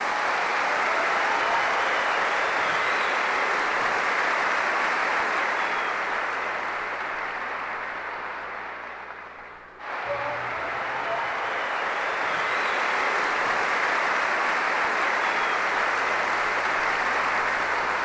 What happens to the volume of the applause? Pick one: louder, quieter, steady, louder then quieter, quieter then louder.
quieter then louder.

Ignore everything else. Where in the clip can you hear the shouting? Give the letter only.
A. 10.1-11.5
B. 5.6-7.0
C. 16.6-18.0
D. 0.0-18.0
A.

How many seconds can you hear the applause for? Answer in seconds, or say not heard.
18 s.